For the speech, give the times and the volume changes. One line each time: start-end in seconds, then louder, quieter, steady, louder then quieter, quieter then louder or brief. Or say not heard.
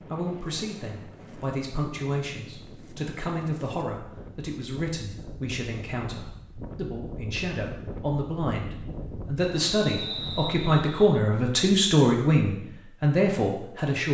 0.1-14.0 louder.